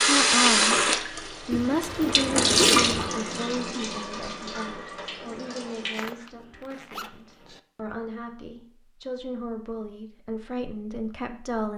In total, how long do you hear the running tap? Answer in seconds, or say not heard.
6 s.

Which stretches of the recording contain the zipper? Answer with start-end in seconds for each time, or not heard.
1.5-3.1, 5.9-7.6.